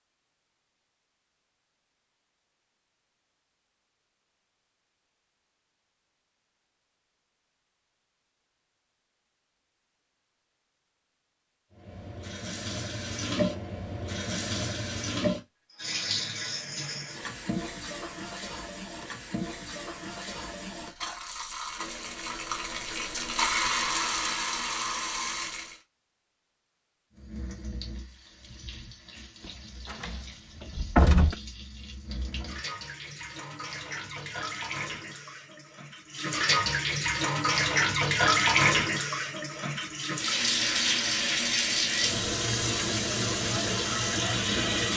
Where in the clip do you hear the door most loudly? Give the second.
31 s.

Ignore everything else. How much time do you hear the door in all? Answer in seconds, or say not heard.
2 s.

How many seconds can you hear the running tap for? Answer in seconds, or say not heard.
32 s.